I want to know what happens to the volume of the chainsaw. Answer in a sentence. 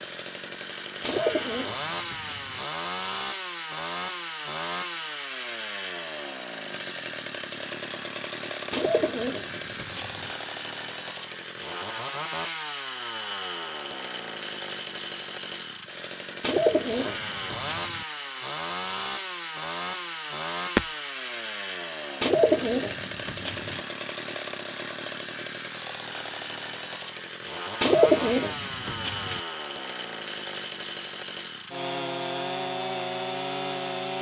The volume of the chainsaw stays about the same.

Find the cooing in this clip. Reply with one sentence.
The cooing can be heard from 1.0 to 2.6 s, from 8.7 to 10.3 s, from 16.4 to 18.1 s, from 22.2 to 23.8 s and from 27.8 to 29.4 s.